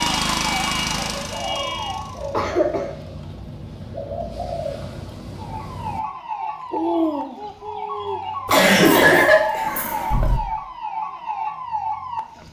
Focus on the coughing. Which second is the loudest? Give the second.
9 s.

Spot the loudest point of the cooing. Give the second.
7 s.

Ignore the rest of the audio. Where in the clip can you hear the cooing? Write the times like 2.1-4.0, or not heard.
0.8-8.3.